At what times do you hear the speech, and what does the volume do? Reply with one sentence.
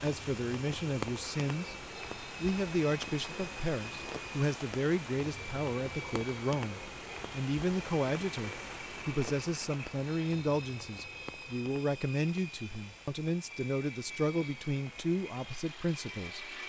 You can hear the speech from 0.0 to 16.6 s, at a steady volume.